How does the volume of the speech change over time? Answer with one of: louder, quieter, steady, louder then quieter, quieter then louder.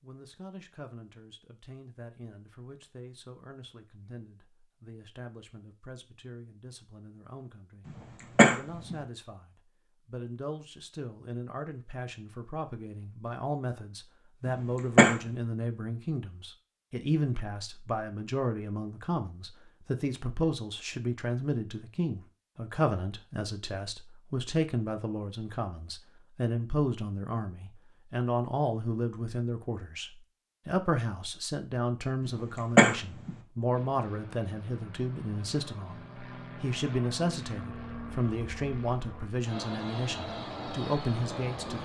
louder.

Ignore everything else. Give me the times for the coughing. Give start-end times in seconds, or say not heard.
7.8-8.9, 14.4-15.2, 32.2-33.3.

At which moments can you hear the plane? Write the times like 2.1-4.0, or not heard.
33.7-41.7.